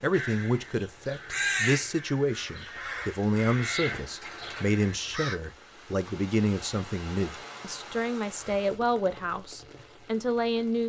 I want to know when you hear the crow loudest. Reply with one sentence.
The volume of the crow peaks at 2 seconds.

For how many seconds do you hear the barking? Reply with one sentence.
The barking can't be heard in this clip.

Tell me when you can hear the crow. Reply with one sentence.
You can hear the crow from 0.1 to 5.3 s.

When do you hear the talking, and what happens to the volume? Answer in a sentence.
The talking can be heard from 0.0 to 10.8 s, at a steady volume.